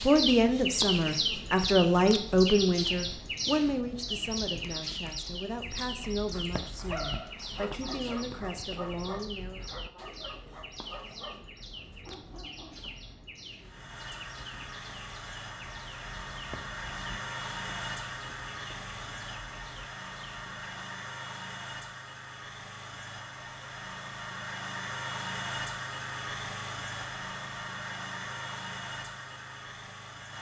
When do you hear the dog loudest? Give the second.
7 s.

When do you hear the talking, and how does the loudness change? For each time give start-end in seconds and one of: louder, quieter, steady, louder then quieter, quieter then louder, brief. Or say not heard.
0.0-9.7 quieter.